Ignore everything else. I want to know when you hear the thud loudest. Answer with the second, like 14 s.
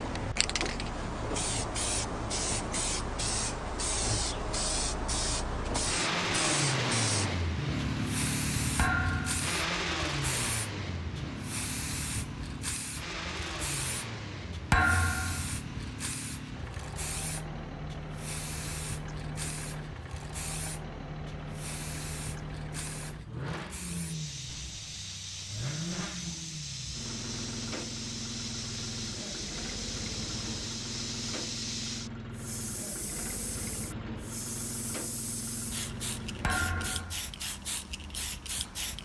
15 s.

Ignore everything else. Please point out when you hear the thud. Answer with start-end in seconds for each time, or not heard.
8.8-9.4, 14.7-15.5, 36.4-37.3.